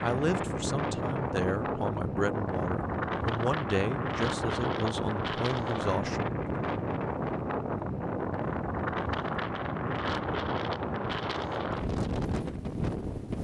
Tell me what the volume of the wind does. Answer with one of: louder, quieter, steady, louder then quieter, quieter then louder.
steady.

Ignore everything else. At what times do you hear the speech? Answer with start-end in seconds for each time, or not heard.
0.0-6.4.